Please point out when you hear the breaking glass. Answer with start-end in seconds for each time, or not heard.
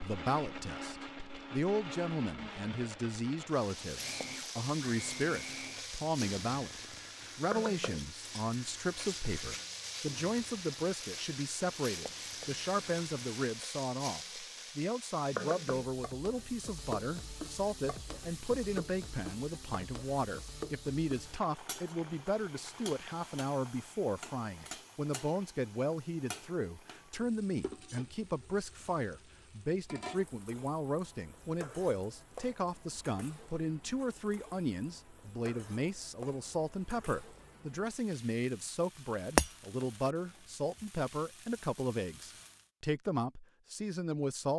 39.4-40.1.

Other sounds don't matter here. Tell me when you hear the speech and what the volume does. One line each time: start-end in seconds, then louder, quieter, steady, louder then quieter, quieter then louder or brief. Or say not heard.
0.0-44.5 steady.